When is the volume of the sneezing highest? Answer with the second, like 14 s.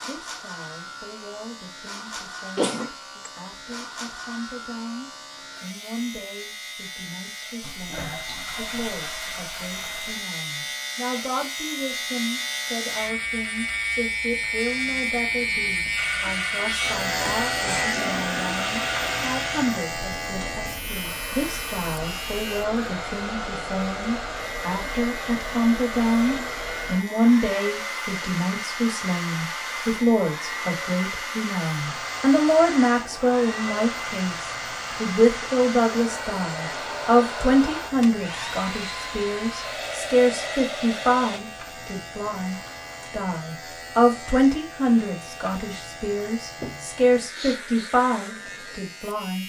3 s.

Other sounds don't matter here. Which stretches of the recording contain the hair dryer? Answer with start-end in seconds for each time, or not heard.
15.9-41.4.